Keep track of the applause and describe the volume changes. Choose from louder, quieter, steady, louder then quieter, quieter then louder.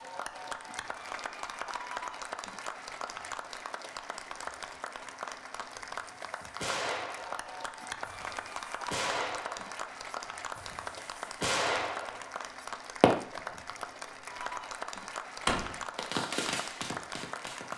steady.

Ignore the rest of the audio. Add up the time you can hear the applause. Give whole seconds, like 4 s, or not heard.
18 s.